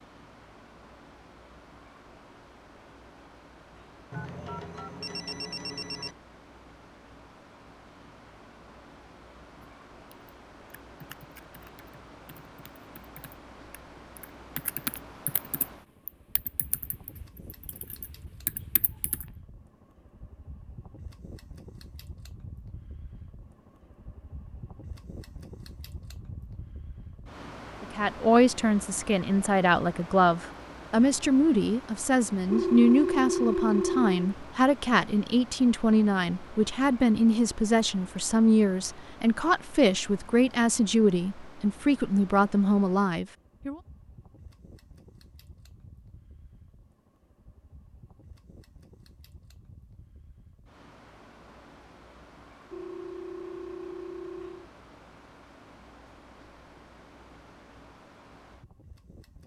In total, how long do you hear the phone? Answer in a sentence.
The phone can be heard for 6 seconds in total.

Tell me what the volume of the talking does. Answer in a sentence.
The volume of the talking stays about the same.